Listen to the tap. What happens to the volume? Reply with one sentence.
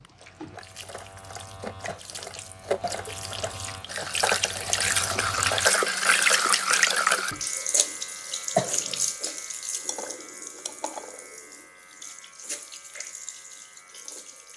The volume of the tap goes up, then down.